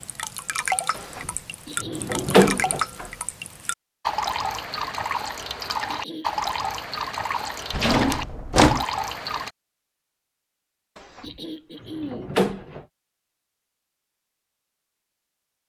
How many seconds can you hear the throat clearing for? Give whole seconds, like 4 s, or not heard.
3 s.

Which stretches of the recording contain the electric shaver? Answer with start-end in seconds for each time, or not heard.
not heard.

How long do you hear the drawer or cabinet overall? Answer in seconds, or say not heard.
5 s.